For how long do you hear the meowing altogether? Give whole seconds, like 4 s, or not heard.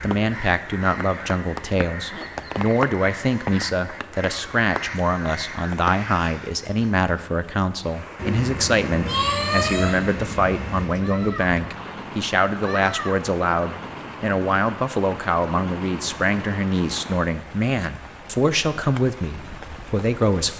3 s.